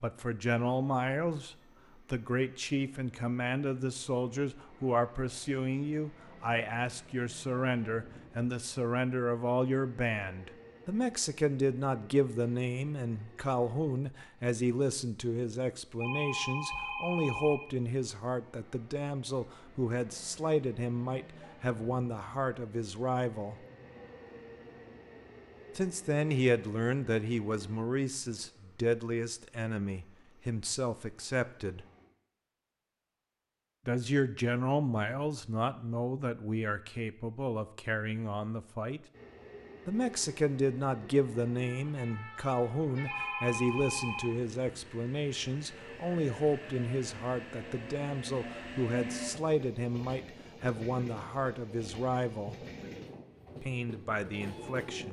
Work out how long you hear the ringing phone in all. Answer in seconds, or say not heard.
3 s.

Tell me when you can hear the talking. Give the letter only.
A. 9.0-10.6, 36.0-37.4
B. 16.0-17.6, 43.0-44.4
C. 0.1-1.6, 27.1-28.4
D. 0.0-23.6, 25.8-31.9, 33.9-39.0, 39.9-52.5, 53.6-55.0
D.